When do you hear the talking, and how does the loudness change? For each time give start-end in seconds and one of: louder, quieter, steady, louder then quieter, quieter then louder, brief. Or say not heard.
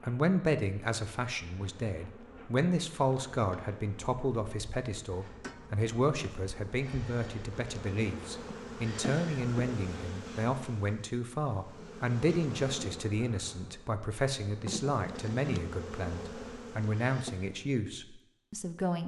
0.0-19.0 steady.